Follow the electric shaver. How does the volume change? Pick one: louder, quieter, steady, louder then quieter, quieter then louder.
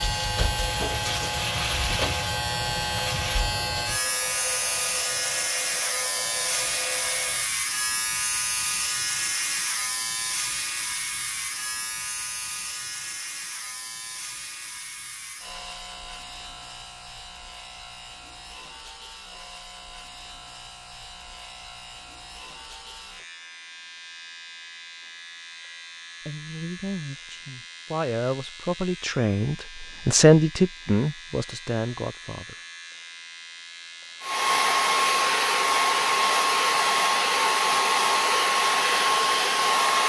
quieter.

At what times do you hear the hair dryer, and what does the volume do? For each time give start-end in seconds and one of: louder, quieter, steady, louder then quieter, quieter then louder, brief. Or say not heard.
0.0-7.5 steady
34.2-40.0 steady.